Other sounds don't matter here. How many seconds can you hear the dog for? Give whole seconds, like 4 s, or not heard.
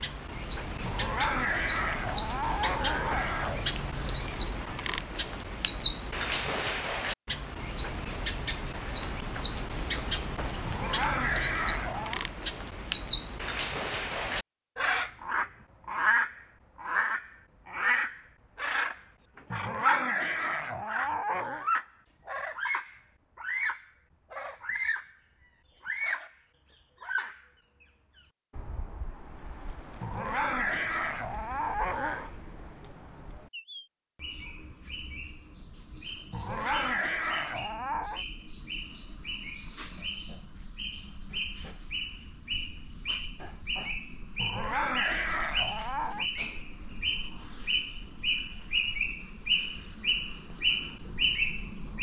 13 s.